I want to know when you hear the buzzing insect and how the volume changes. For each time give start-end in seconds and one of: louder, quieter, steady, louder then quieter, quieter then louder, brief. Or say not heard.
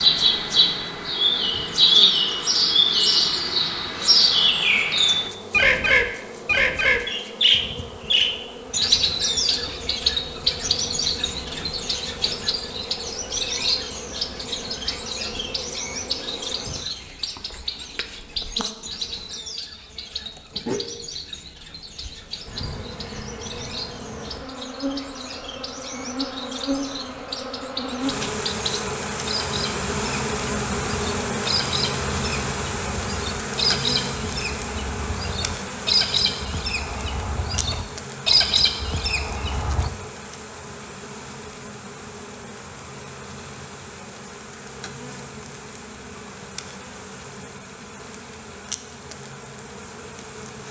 0.0-50.6 louder then quieter.